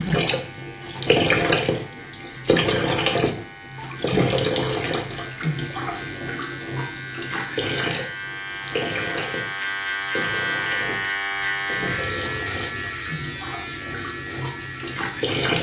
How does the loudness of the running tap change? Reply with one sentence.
The loudness of the running tap goes down.